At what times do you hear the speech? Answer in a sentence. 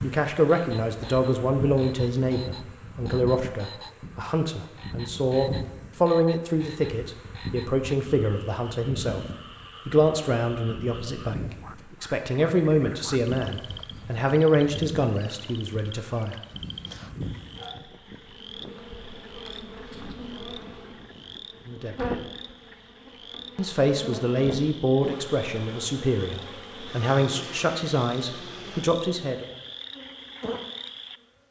The speech can be heard from 0.0 to 9.2 s, from 9.8 to 16.4 s, from 21.6 to 22.1 s and from 23.6 to 29.4 s.